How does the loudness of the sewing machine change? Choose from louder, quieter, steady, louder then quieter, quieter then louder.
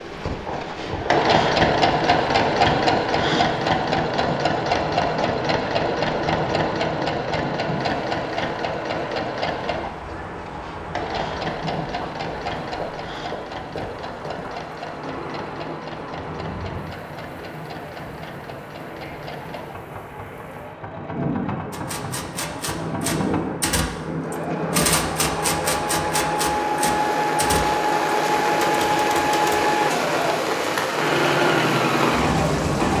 quieter then louder.